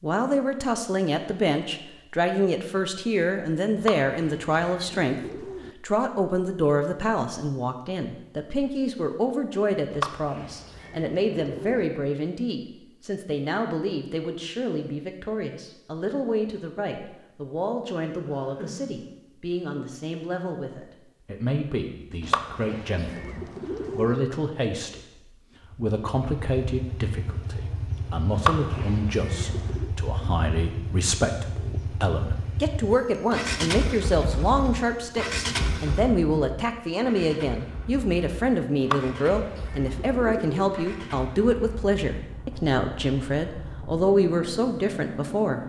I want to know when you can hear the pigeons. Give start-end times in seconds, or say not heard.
3.8-5.7, 9.9-11.8, 22.2-24.2, 28.4-29.9, 38.8-40.8.